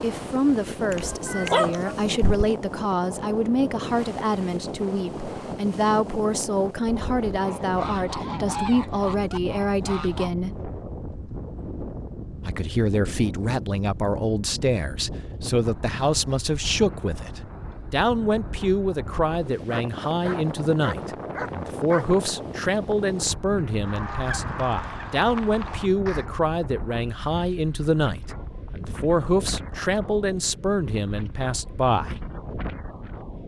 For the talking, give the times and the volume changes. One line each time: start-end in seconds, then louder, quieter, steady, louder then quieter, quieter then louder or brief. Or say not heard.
0.0-10.6 steady
12.4-32.2 steady.